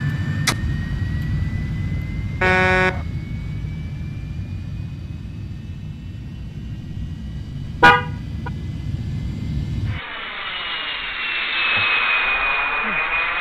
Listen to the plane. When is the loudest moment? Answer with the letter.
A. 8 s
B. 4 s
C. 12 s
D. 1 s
C.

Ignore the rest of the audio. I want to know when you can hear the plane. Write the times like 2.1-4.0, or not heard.
0.0-13.3.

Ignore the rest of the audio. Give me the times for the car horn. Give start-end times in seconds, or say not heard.
2.4-3.0, 7.8-8.5.